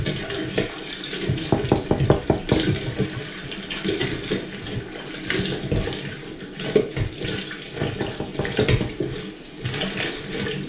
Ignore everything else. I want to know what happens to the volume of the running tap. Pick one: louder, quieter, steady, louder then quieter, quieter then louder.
steady.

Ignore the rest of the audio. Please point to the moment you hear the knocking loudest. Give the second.
2 s.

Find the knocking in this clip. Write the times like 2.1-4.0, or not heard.
1.5-2.7, 7.8-8.9.